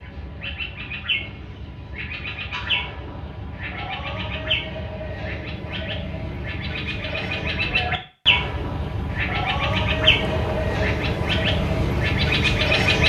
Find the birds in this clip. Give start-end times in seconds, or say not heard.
0.0-13.0.